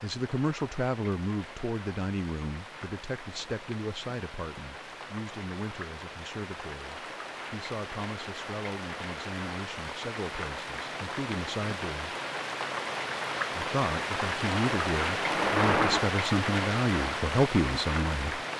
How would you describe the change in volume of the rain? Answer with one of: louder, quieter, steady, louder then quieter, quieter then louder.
louder.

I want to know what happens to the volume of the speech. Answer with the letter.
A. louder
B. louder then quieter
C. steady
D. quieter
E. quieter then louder
E.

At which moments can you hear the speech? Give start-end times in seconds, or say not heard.
0.0-12.2, 13.6-18.4.